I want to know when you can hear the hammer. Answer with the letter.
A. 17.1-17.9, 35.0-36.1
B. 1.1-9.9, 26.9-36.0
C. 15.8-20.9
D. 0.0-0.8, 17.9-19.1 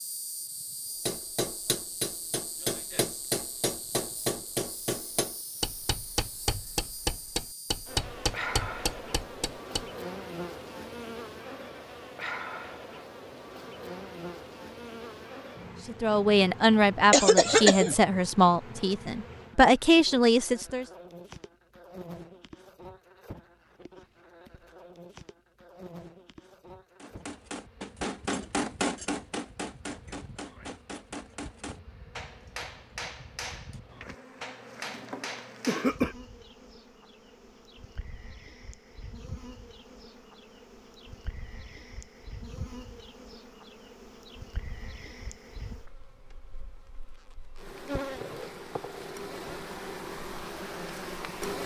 B.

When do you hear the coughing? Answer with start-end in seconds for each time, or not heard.
17.1-17.9, 35.0-36.1.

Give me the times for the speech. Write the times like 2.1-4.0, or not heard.
15.8-20.9.